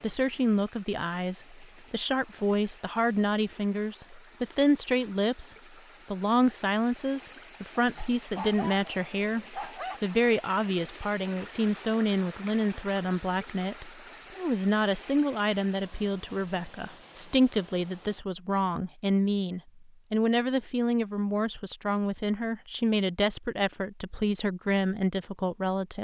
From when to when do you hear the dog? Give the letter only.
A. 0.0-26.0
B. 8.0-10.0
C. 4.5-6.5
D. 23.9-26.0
B.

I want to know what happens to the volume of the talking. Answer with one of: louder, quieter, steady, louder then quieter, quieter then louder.
steady.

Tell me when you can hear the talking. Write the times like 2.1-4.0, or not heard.
0.0-26.0.